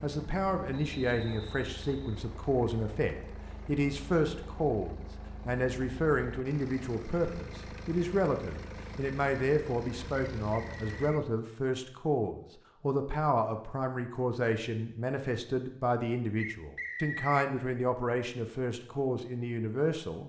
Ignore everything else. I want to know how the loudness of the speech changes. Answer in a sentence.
The loudness of the speech stays about the same.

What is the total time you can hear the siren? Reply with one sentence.
The siren can't be heard in this clip.